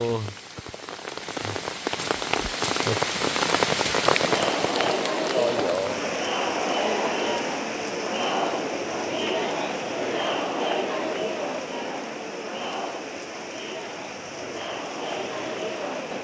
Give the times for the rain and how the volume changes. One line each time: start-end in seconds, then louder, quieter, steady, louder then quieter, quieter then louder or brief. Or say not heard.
0.0-16.1 quieter.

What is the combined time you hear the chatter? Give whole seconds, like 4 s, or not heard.
12 s.